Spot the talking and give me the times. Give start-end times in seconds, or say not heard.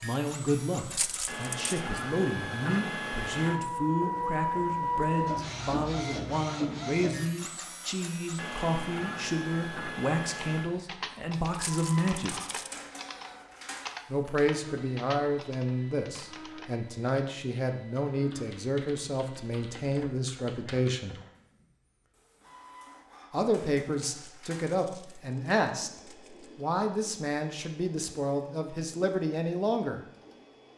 0.0-12.4, 14.1-21.1, 23.3-25.9, 26.6-30.0.